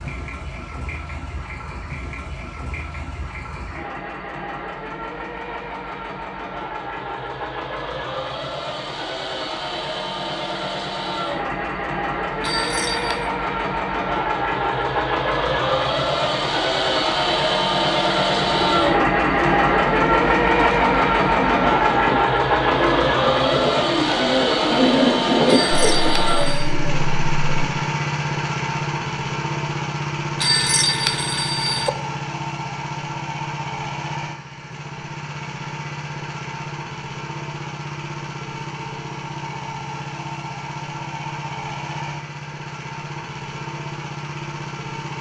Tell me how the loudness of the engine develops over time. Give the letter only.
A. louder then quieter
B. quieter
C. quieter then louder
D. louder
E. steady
A.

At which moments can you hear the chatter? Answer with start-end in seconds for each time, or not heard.
not heard.